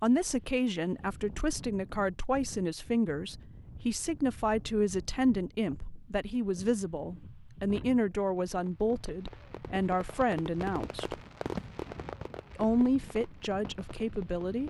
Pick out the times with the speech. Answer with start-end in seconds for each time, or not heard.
0.0-11.2, 12.6-14.6.